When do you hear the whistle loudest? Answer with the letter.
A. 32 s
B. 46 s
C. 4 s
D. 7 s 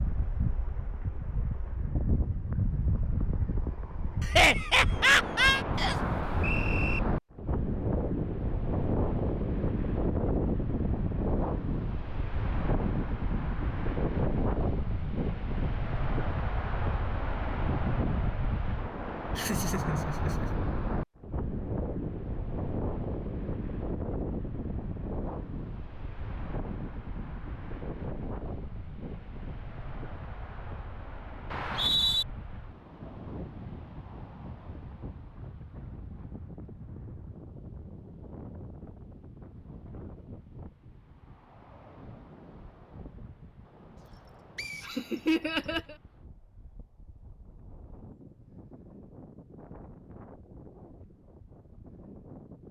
A.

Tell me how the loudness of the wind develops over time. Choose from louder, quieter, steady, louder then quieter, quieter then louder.
quieter.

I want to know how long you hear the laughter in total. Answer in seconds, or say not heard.
4 s.